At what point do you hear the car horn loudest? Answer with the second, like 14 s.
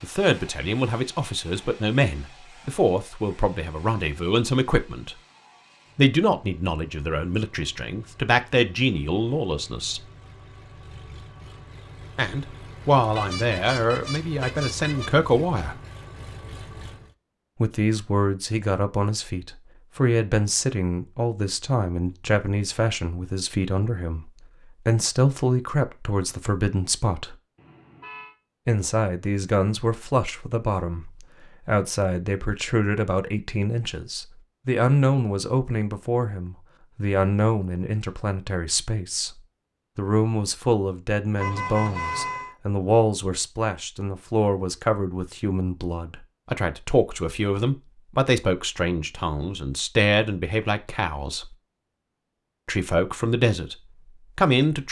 42 s.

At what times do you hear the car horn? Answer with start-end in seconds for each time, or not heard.
13.1-15.1, 27.6-28.4, 41.4-42.5.